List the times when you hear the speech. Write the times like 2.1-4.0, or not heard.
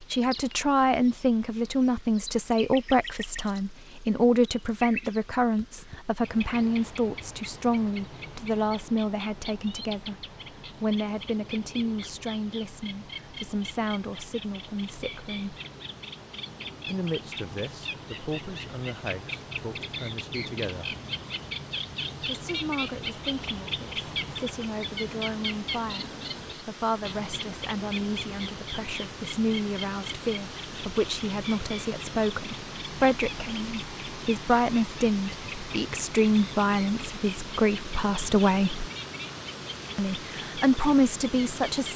0.0-15.6, 16.9-20.9, 22.2-38.9, 40.0-41.9.